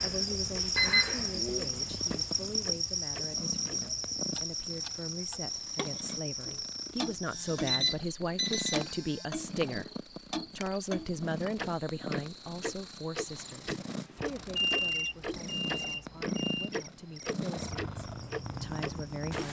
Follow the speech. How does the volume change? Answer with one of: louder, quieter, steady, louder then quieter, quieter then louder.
louder then quieter.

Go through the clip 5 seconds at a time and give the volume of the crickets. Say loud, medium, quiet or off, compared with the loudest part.
loud, medium, quiet, quiet.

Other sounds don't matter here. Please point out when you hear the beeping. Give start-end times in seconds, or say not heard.
0.8-1.6, 7.2-9.2, 14.2-16.7.